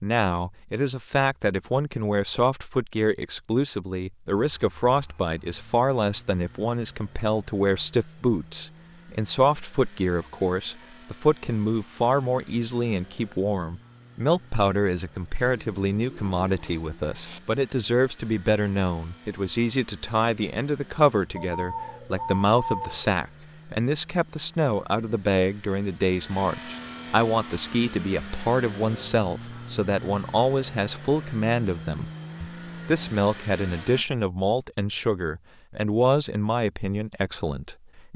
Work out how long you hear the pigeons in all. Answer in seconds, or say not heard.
4 s.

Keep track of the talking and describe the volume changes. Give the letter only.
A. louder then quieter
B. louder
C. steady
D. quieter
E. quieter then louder
C.